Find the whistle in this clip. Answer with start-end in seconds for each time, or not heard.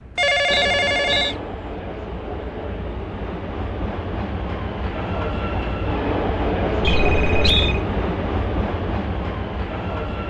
0.5-1.4, 6.8-7.8.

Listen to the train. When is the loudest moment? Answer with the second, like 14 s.
7 s.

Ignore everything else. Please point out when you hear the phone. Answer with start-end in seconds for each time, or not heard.
0.1-1.4, 6.8-7.8.